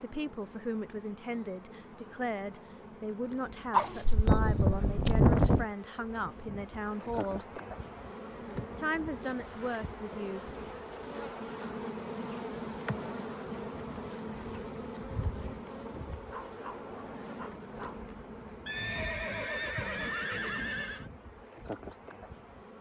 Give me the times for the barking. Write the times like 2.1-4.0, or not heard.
3.7-5.7, 16.2-18.1.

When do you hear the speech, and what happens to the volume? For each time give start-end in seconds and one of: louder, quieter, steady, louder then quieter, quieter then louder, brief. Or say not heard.
0.0-7.5 steady
8.8-10.4 brief.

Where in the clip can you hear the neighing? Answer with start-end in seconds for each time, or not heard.
18.6-21.1.